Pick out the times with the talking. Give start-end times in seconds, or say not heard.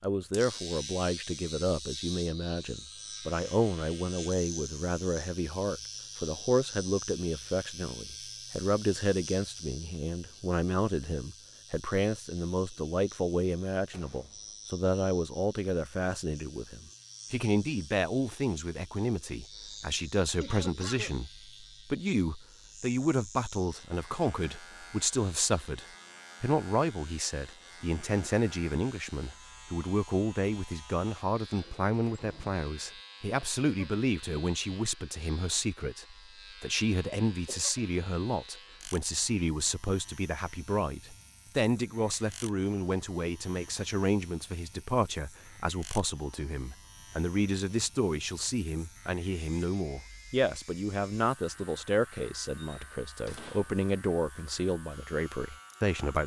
0.0-56.2.